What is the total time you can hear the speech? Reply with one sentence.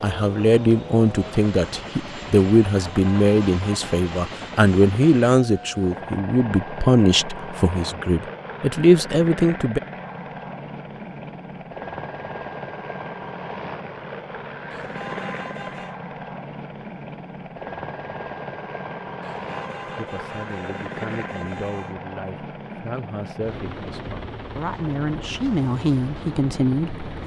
You can hear the speech for 17 seconds altogether.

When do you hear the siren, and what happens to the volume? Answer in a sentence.
You can't hear the siren here.